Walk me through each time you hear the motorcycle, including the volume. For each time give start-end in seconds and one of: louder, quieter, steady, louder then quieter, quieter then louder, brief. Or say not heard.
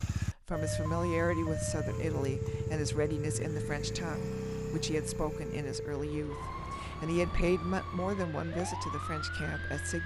0.0-10.0 quieter.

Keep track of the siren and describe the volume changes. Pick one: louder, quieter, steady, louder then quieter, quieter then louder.
steady.